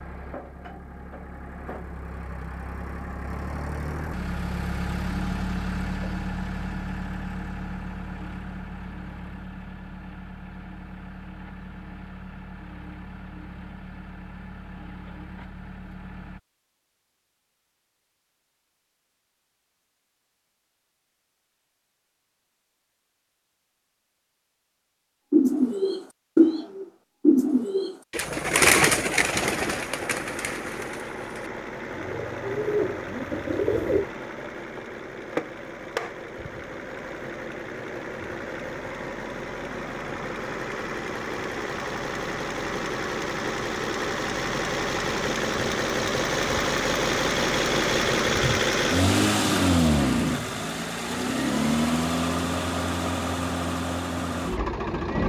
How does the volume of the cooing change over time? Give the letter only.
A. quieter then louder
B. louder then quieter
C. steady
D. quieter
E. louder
A.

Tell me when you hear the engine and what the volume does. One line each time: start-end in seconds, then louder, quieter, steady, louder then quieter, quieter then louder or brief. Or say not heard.
0.0-16.4 louder then quieter
28.2-55.2 louder.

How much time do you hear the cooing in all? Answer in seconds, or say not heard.
9 s.